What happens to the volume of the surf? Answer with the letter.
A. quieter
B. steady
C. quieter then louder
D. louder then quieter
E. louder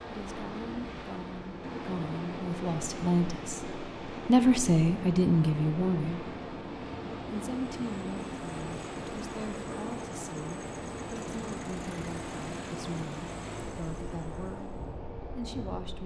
B.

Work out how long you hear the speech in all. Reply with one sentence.
You can hear the speech for 15 seconds altogether.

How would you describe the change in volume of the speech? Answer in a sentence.
The volume of the speech goes up, then down.